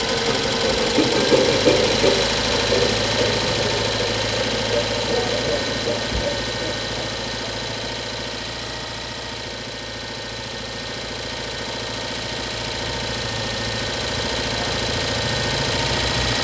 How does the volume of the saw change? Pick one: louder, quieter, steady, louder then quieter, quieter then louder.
quieter.